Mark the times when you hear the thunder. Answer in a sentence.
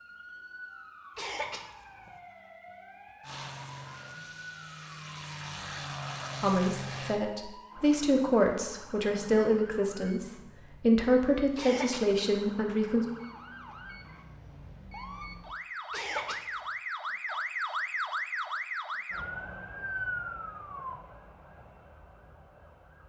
You can't hear the thunder here.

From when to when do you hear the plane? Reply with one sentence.
The plane can be heard from 3.2 to 7.2 s.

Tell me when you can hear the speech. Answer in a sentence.
The speech can be heard from 6.4 to 13.1 s.